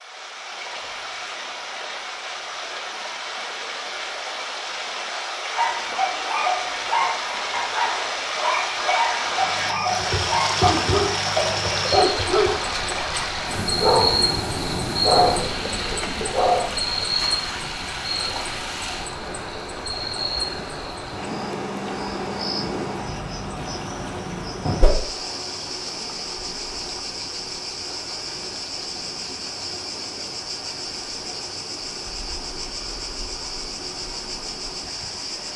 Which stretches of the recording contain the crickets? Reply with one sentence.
The crickets can be heard from 9.2 to 35.5 s.